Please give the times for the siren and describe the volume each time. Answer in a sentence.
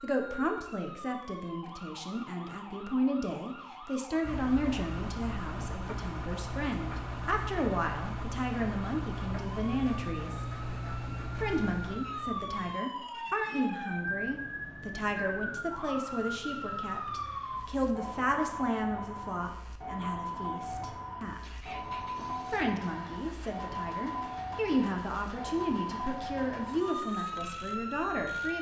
You can hear the siren from 0.0 to 28.5 s, getting louder.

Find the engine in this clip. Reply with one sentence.
The engine can be heard from 4.2 to 12.8 s and from 20.6 to 28.5 s.